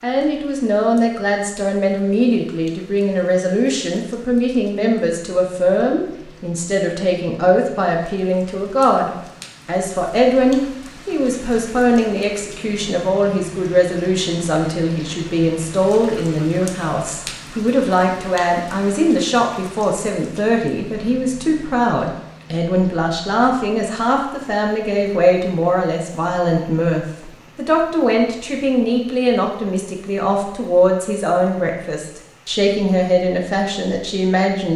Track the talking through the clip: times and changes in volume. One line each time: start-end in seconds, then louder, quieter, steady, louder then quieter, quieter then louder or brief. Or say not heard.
0.0-34.7 steady.